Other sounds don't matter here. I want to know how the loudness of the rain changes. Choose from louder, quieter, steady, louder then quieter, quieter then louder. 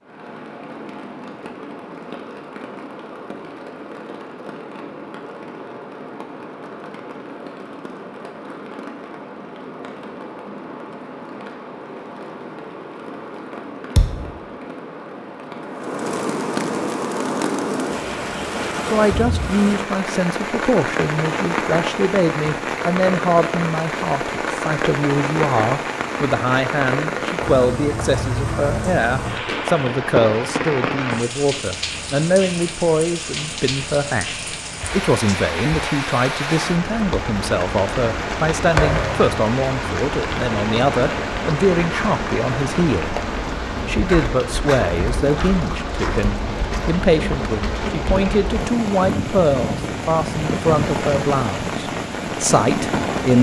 louder.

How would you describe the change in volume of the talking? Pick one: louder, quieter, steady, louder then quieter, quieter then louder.
steady.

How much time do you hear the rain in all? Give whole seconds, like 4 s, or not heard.
53 s.